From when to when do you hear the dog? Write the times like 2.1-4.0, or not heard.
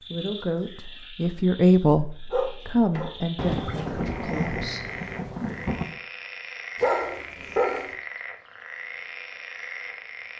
2.3-3.1, 6.8-8.0.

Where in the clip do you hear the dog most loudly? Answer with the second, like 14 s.
7 s.